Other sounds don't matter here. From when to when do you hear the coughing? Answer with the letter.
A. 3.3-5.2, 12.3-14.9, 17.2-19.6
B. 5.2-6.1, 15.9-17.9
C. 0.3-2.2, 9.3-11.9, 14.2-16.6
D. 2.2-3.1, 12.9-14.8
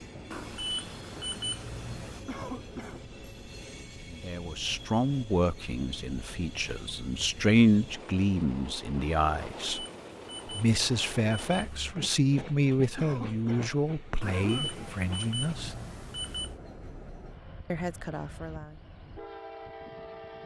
D.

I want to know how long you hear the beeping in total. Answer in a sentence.
The beeping can be heard for 7 seconds in total.